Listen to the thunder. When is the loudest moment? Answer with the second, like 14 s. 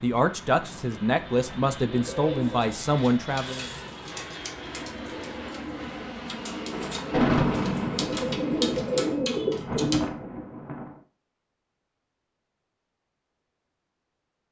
7 s.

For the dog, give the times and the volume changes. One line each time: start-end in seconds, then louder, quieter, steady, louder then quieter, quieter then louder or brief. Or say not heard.
not heard.